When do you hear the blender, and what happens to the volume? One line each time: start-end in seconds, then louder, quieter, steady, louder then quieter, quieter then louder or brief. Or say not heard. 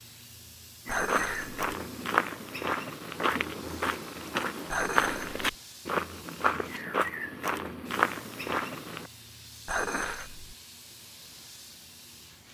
not heard.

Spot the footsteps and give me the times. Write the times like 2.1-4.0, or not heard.
0.8-9.1.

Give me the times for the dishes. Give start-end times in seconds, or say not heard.
0.8-1.6, 4.7-5.4, 9.7-10.6.